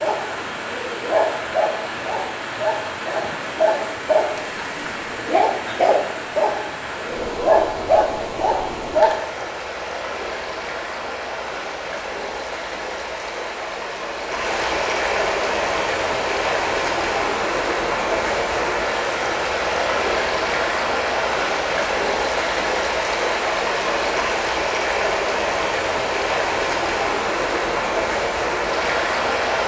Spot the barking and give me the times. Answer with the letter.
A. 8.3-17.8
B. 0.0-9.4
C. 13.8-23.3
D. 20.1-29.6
B.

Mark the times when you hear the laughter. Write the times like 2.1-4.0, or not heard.
not heard.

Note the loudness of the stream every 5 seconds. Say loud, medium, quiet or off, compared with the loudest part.
medium, medium, medium, loud, loud, loud.